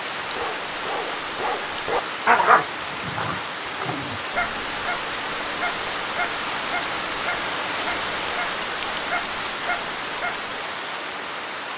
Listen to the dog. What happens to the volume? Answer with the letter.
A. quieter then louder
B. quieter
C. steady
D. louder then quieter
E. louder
B.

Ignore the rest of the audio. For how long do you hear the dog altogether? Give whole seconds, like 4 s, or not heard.
10 s.